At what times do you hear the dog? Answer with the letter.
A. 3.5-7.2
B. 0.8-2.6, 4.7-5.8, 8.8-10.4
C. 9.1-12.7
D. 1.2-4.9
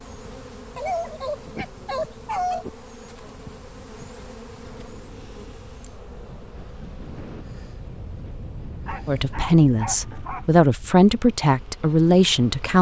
B.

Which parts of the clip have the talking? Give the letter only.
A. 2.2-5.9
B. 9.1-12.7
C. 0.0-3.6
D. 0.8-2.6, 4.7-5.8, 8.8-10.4
B.